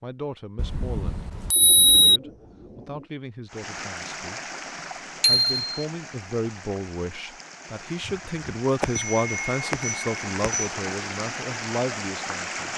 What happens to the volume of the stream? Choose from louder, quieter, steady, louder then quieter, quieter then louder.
quieter then louder.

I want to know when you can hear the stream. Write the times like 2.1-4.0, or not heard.
3.5-12.7.